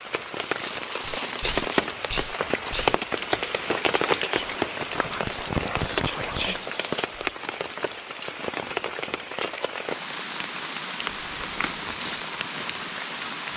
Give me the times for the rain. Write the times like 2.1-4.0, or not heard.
0.0-13.5.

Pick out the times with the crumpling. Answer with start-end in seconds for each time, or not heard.
0.4-2.1, 4.8-6.5, 11.2-11.8.